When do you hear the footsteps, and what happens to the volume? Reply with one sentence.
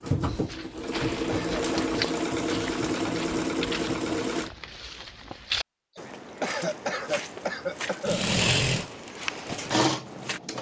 The footsteps can be heard from 0.2 to 10.4 s, at a steady volume.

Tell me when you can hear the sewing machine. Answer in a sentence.
You can hear the sewing machine from 0.0 to 4.5 s and from 8.1 to 10.5 s.